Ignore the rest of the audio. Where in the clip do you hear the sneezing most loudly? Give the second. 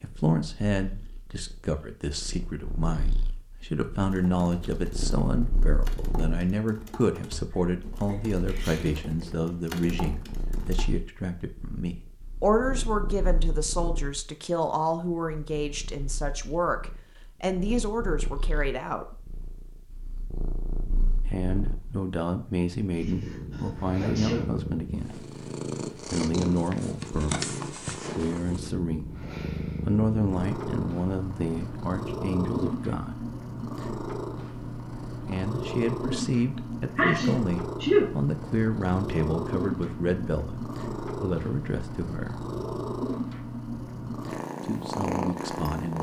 38 s.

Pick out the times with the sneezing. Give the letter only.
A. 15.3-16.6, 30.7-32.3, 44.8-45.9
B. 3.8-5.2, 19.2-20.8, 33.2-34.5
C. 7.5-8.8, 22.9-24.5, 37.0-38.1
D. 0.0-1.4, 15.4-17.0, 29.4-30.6
C.